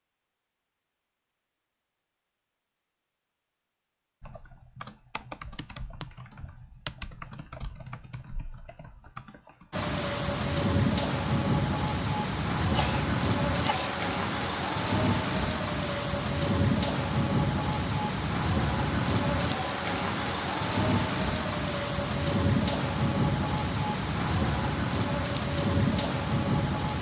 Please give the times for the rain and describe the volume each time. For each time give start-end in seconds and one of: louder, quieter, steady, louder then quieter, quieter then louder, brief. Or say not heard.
9.7-26.9 steady.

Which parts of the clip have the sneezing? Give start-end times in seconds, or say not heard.
12.6-14.0.